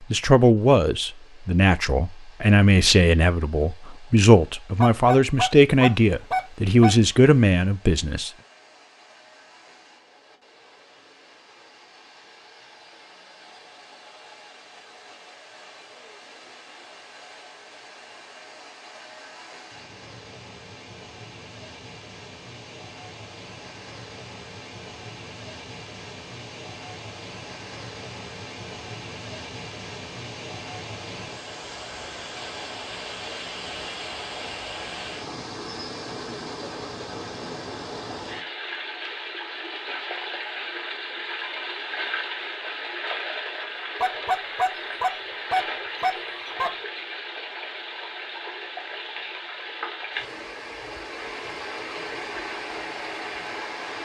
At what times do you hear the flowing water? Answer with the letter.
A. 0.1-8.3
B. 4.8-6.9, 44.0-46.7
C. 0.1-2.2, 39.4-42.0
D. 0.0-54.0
D.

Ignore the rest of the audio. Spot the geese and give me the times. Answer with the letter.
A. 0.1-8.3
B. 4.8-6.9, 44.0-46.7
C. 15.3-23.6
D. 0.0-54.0
B.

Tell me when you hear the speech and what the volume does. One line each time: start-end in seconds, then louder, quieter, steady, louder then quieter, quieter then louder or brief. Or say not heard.
0.1-8.3 steady.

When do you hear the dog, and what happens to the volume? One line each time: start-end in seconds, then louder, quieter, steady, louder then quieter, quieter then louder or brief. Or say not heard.
not heard.